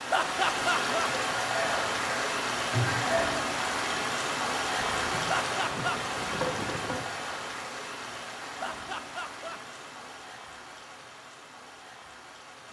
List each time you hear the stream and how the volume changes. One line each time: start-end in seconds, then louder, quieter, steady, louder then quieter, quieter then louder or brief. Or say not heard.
0.0-12.6 quieter.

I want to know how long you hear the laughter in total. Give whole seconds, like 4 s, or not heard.
3 s.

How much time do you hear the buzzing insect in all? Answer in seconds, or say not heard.
2 s.